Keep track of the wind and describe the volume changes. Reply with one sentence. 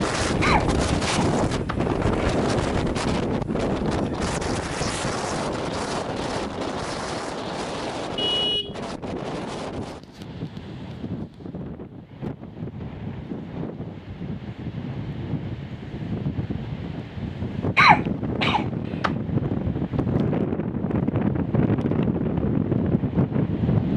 The volume of the wind goes down, then up.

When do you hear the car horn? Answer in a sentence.
You can hear the car horn from 8.2 to 8.8 s.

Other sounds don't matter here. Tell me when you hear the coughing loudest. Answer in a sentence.
The loudest moment of the coughing is at 18 seconds.